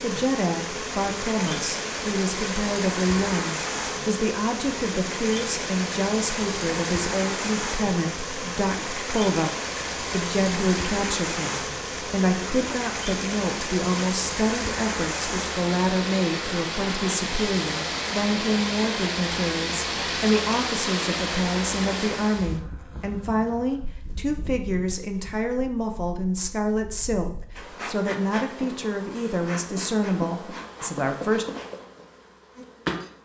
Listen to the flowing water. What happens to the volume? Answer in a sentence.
The loudness of the flowing water stays about the same.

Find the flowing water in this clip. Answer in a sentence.
You can hear the flowing water from 0.0 to 22.6 s.